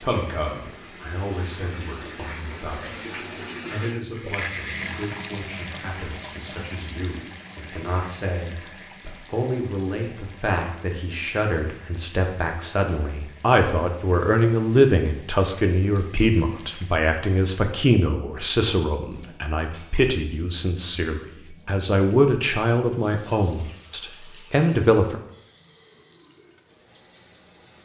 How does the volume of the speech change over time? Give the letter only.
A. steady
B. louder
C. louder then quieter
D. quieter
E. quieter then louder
B.